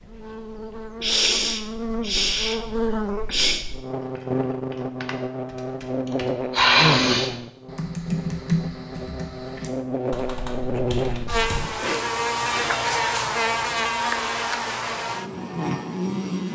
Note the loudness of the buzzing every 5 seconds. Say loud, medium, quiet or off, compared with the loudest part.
medium, medium, loud, loud.